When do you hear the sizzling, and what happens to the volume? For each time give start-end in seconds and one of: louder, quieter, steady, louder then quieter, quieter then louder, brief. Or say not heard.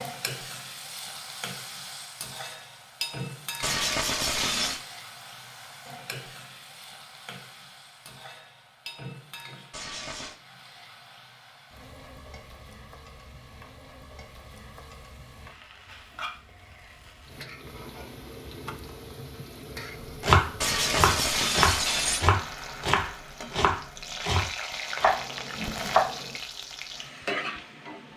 0.0-28.1 quieter then louder.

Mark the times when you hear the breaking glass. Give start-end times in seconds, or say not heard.
3.6-4.8, 9.7-10.3, 20.6-22.3.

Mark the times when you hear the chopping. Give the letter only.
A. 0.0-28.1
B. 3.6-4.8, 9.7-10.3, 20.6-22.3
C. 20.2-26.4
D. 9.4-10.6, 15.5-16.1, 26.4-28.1
C.